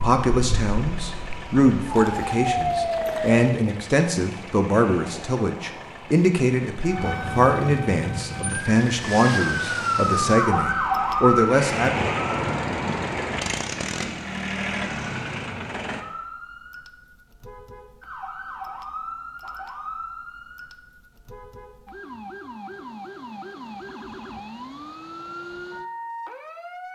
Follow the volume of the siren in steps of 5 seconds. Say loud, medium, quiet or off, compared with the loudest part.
medium, medium, loud, quiet, quiet, quiet.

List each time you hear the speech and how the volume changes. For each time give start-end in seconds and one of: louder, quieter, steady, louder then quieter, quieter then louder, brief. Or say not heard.
0.0-12.1 steady.